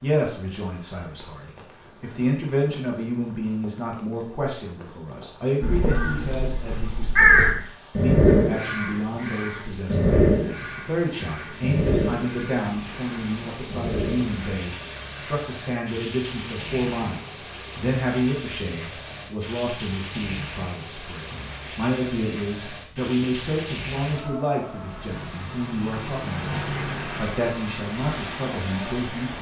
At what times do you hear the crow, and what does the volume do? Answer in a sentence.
The crow can be heard from 5.6 to 15.3 s, getting quieter.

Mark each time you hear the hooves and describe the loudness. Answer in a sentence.
You can't hear the hooves here.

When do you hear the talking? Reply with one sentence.
You can hear the talking from 0.0 to 29.3 s.